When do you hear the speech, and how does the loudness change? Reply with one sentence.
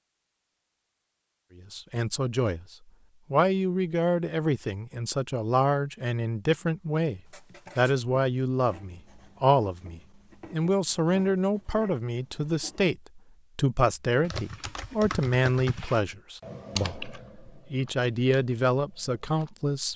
The speech can be heard from 1.6 to 19.9 s, at a steady volume.